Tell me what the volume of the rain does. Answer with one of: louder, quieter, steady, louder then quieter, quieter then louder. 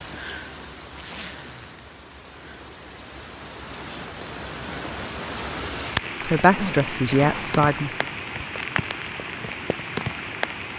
louder.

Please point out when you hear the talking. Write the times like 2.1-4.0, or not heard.
6.2-8.1.